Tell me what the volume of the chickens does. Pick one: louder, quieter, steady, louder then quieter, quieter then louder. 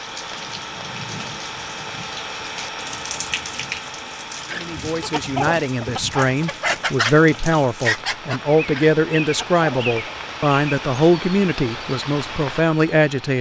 quieter.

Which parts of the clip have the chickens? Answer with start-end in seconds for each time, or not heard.
4.5-10.2.